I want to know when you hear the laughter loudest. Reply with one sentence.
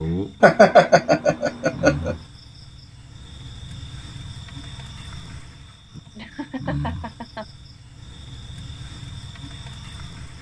The volume of the laughter peaks at 1 second.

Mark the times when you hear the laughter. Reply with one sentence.
You can hear the laughter from 0.4 to 2.1 s and from 6.2 to 7.5 s.